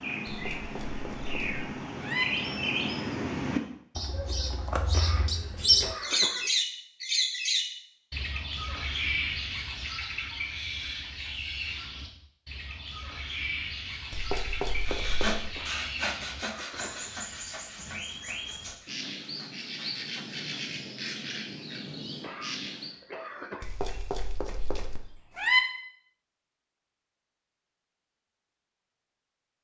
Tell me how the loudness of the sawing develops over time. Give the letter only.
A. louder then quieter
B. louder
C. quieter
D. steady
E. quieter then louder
C.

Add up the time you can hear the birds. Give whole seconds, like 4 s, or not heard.
23 s.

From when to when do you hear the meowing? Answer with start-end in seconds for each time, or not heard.
0.2-2.2, 14.1-15.4, 23.6-25.6.